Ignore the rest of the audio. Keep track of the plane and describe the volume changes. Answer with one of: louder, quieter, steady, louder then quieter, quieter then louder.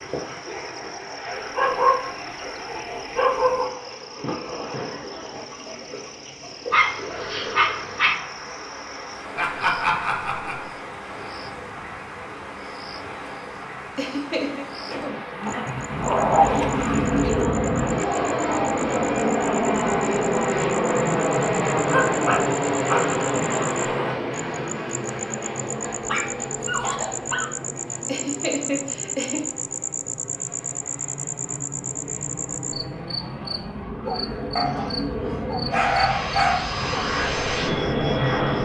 quieter then louder.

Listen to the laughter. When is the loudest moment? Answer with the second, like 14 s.
10 s.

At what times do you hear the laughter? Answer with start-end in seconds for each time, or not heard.
9.3-10.8, 13.9-14.7, 28.1-29.4.